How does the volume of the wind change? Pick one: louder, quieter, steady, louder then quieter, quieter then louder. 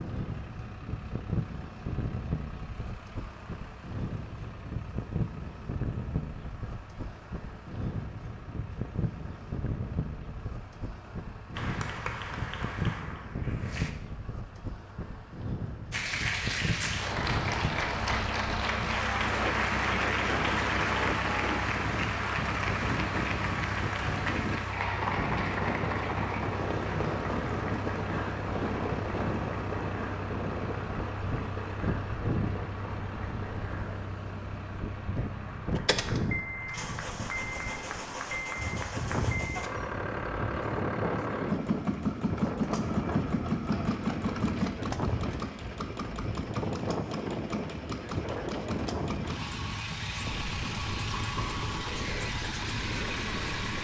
steady.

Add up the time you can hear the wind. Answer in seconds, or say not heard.
54 s.